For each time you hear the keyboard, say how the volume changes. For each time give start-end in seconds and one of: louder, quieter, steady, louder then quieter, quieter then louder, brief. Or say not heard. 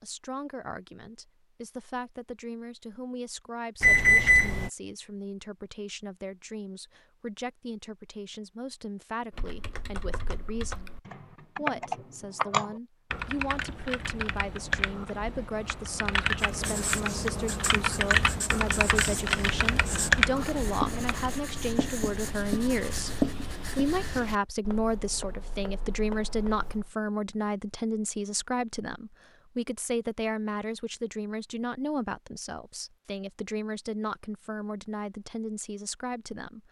9.3-21.3 louder.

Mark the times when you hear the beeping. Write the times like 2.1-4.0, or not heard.
3.8-4.7.